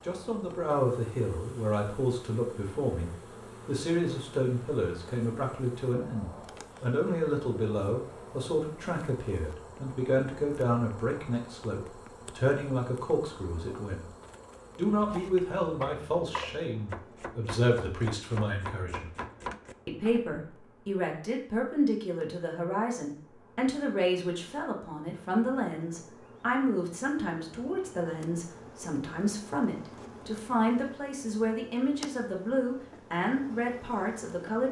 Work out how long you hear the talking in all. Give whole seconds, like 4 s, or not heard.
33 s.